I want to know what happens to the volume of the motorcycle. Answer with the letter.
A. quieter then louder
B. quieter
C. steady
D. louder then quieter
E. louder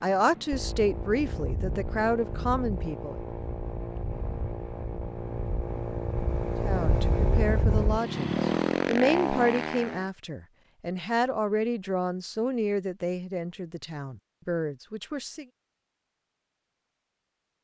E.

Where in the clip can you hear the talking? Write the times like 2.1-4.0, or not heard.
0.0-3.1, 6.6-15.4.